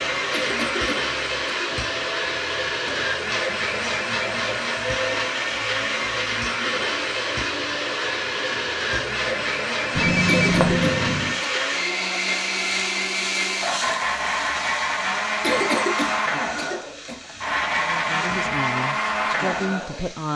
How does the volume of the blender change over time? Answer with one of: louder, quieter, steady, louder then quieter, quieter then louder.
steady.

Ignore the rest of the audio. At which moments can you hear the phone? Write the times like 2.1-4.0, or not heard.
9.9-11.3.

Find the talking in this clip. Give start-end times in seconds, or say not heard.
17.8-20.3.